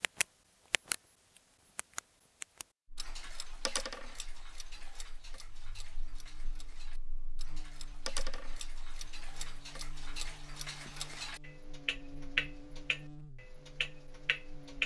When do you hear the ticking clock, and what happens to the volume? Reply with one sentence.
The ticking clock can be heard briefly from 0.0 to 0.9 s; and from 1.8 to 14.8 s, getting quieter then louder.